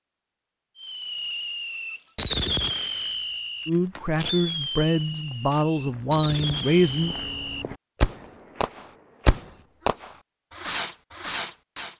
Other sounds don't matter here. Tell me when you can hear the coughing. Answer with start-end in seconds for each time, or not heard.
not heard.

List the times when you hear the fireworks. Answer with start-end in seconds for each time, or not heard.
0.8-11.9.